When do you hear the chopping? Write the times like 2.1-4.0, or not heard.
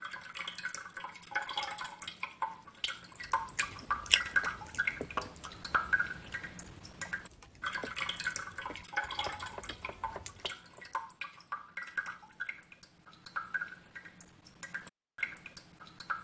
5.2-5.9, 9.2-10.9.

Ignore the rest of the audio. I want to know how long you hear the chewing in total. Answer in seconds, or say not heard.
7 s.